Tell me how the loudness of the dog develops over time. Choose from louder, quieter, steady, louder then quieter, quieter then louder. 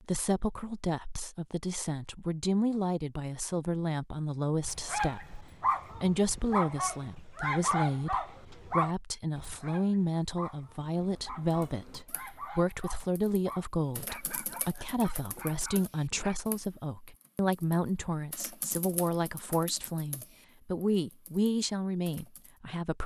quieter.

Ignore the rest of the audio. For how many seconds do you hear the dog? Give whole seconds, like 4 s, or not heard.
12 s.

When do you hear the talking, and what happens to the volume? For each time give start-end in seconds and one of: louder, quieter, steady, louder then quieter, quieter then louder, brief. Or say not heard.
0.1-23.0 steady.